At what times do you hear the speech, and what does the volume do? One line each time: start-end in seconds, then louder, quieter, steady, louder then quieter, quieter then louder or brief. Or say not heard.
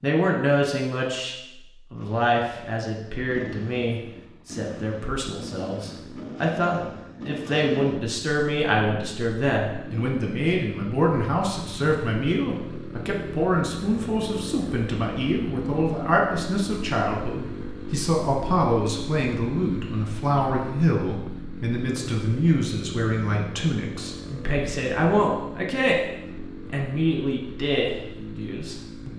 0.0-29.1 steady.